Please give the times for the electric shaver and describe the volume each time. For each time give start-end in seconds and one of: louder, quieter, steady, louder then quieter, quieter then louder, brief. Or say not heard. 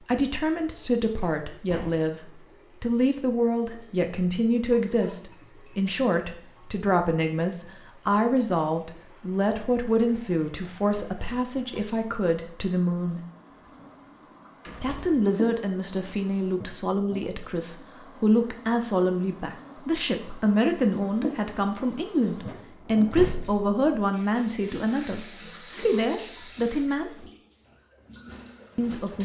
not heard.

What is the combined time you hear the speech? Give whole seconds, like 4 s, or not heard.
26 s.